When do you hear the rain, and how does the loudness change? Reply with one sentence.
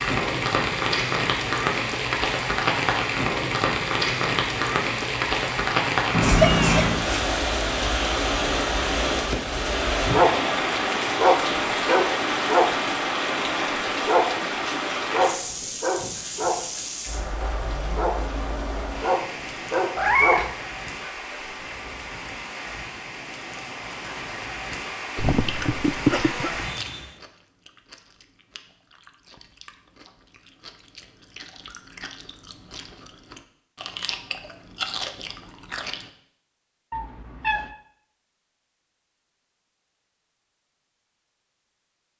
You can hear the rain from 0.0 to 27.1 s, getting quieter.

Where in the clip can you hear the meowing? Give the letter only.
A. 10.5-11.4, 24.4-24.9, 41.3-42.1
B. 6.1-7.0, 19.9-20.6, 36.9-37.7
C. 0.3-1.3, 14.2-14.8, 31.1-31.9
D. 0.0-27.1
B.